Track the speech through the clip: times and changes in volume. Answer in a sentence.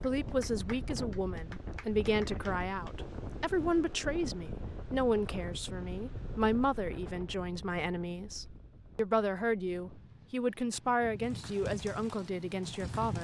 The speech can be heard from 0.0 to 13.1 s, at a steady volume.